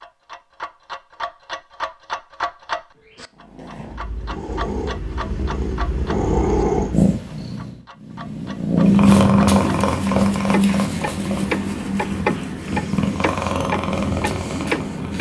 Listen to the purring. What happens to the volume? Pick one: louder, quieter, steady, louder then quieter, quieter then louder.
louder then quieter.